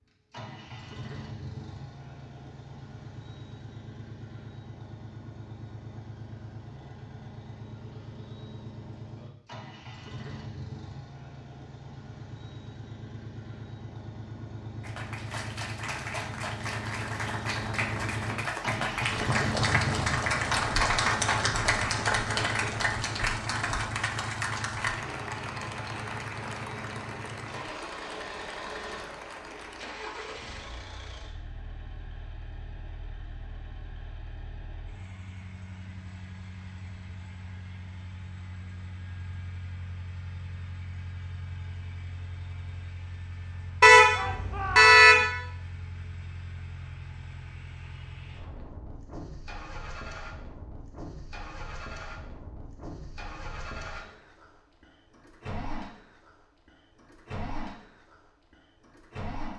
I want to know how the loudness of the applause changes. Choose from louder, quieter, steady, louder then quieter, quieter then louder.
louder then quieter.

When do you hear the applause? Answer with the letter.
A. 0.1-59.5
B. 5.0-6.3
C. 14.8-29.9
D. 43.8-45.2
C.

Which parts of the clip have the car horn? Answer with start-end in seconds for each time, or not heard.
43.8-45.2.